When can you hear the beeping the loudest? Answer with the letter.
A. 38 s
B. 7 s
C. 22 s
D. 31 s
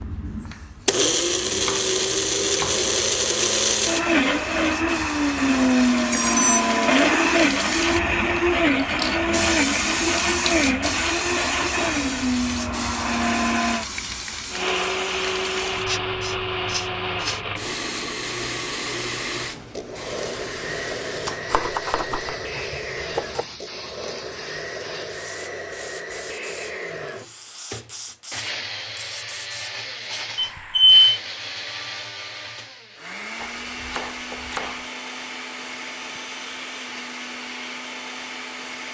D.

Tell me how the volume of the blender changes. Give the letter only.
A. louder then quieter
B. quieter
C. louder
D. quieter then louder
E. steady
B.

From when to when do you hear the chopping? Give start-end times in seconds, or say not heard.
1.6-2.9, 21.4-23.4, 33.4-34.9.